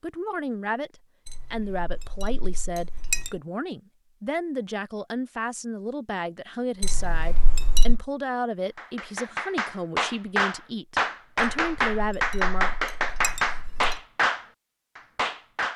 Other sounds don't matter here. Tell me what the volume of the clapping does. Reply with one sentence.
The volume of the clapping stays about the same.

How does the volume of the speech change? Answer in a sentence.
The volume of the speech stays about the same.